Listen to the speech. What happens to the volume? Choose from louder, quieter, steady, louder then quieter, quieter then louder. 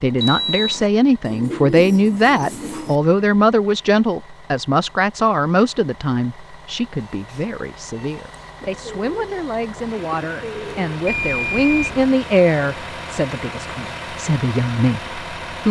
quieter then louder.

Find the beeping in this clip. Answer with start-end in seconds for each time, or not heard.
0.1-0.9, 7.1-8.5, 11.1-12.1.